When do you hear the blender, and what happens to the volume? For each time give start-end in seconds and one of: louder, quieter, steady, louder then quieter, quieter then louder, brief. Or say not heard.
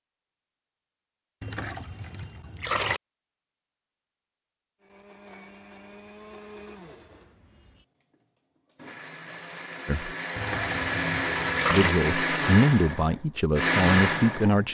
4.8-14.6 quieter then louder.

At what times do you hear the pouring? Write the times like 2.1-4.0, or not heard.
1.4-3.0, 10.3-11.9.